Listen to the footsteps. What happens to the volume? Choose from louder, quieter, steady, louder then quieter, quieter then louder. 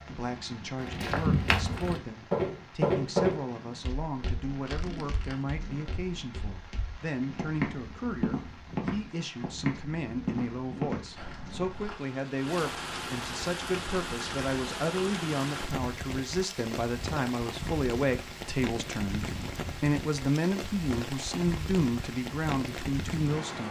quieter then louder.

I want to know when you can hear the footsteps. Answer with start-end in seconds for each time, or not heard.
0.8-11.9.